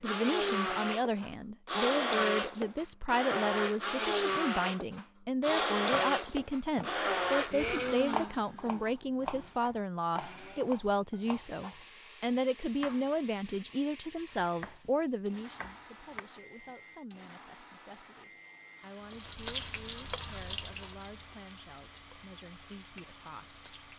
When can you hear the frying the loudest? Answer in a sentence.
The volume of the frying peaks at 20 seconds.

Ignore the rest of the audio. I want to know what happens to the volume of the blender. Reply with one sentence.
The volume of the blender goes down.